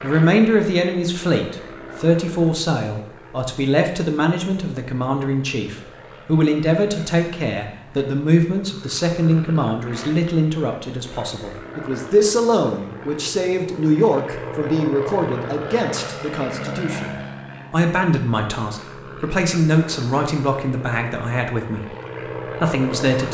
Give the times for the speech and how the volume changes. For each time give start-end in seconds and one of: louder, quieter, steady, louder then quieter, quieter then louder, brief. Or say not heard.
0.0-21.9 steady
22.6-23.2 brief.